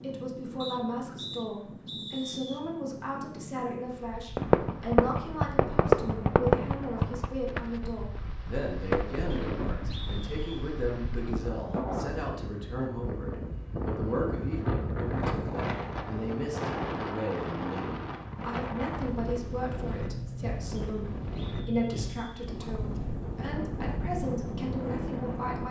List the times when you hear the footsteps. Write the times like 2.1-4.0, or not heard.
not heard.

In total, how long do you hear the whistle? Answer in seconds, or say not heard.
5 s.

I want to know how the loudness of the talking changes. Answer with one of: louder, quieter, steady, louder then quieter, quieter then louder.
steady.